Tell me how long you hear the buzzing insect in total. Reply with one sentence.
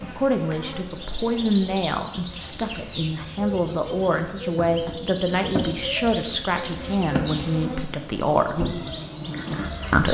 You can hear the buzzing insect for 10 seconds altogether.